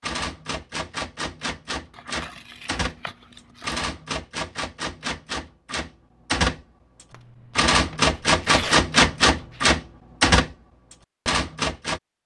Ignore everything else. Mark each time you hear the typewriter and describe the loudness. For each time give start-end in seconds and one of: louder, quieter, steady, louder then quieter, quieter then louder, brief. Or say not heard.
0.0-12.0 louder.